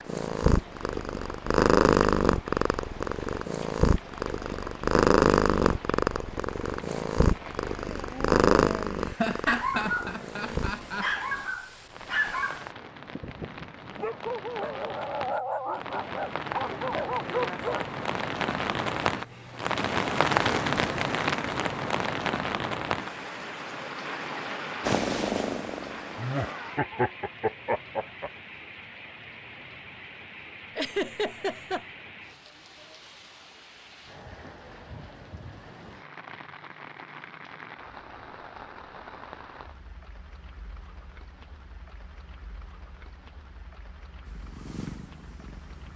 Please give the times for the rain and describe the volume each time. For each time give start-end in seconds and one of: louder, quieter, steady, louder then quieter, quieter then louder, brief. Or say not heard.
0.0-45.9 louder then quieter.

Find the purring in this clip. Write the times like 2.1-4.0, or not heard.
0.0-10.8, 24.8-26.6, 44.2-45.9.